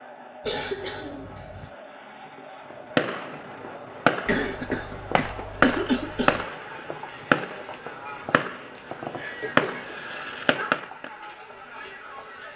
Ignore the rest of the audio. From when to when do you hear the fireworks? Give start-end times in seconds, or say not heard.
3.0-11.1.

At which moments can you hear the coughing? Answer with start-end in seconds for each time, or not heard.
0.4-1.7, 4.2-6.4, 8.7-10.0.